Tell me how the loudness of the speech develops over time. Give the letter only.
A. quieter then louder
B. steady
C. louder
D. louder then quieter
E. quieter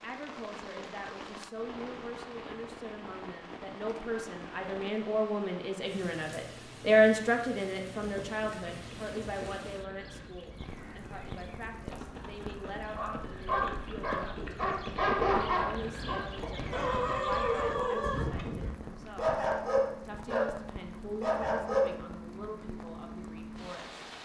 D.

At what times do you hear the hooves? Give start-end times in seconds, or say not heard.
8.1-18.8.